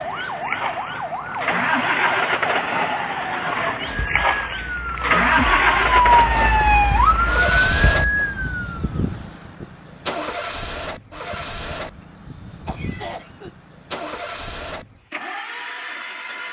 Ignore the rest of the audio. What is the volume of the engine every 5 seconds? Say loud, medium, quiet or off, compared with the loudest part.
loud, loud, medium, medium.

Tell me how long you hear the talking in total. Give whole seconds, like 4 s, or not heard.
not heard.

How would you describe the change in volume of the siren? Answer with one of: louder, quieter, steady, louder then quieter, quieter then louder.
louder.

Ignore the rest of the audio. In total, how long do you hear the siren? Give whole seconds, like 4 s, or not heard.
9 s.